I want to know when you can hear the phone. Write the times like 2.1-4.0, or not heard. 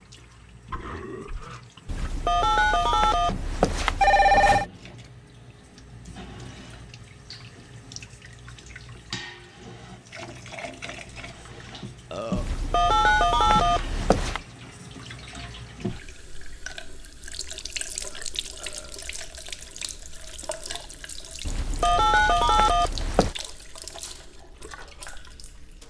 1.9-4.7, 12.3-14.4, 21.4-23.4.